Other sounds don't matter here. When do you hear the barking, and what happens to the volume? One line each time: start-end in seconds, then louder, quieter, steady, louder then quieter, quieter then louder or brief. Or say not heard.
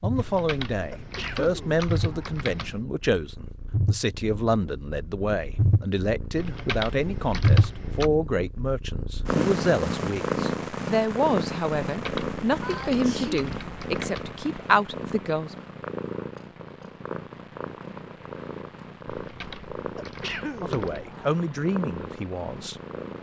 not heard.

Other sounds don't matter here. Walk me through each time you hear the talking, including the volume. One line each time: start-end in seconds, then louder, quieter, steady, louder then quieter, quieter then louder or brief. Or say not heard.
0.0-15.6 steady
20.6-22.8 brief.